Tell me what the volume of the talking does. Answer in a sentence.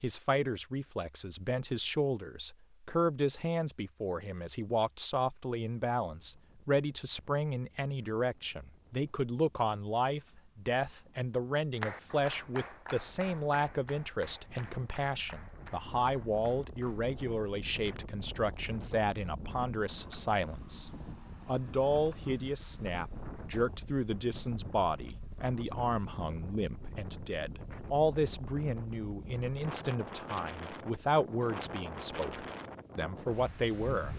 The volume of the talking stays about the same.